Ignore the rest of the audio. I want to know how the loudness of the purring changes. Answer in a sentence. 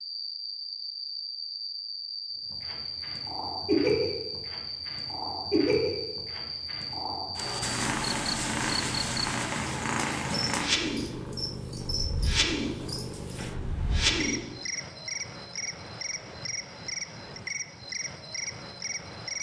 The volume of the purring stays about the same.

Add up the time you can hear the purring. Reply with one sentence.
The purring can be heard for 12 seconds in total.